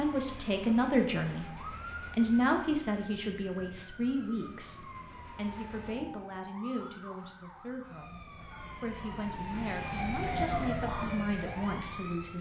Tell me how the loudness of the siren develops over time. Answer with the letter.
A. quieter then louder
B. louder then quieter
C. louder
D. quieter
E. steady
C.